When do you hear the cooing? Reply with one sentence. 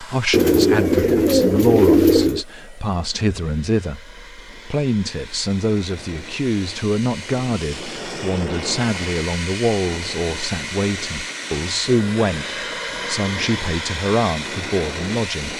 You can hear the cooing from 0.3 to 2.4 s.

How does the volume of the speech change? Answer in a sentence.
The loudness of the speech stays about the same.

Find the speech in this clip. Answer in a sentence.
You can hear the speech from 0.0 to 15.5 s.